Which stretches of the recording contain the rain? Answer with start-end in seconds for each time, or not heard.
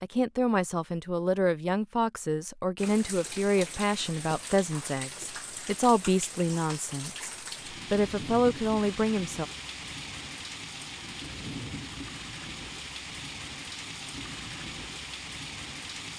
2.8-16.1.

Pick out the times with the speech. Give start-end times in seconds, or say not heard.
0.0-9.4.